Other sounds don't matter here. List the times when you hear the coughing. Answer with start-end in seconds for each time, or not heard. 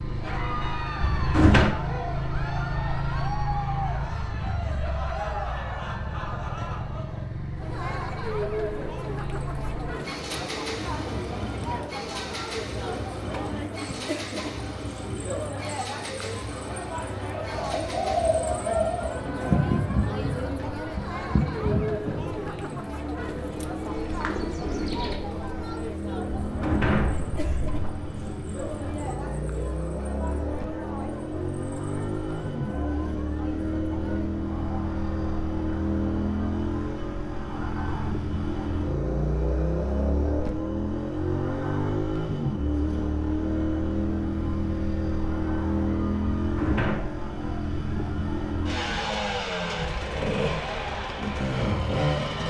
not heard.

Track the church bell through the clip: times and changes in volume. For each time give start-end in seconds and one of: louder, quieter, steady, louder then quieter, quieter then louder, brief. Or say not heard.
not heard.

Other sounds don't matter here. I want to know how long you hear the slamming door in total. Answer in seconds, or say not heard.
3 s.